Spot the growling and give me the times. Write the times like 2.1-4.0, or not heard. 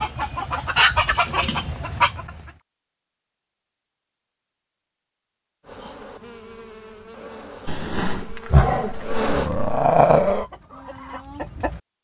7.7-10.4.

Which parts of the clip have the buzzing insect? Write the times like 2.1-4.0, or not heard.
5.6-9.5.